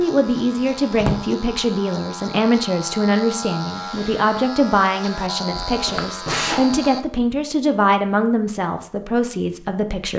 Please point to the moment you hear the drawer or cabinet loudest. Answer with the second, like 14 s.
1 s.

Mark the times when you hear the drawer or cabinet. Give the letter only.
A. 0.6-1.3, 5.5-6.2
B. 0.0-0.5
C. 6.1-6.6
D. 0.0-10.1
A.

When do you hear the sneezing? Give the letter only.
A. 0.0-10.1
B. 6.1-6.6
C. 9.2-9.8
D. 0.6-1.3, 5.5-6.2
B.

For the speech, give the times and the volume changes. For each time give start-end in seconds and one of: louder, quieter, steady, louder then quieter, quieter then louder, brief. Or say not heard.
0.0-10.1 steady.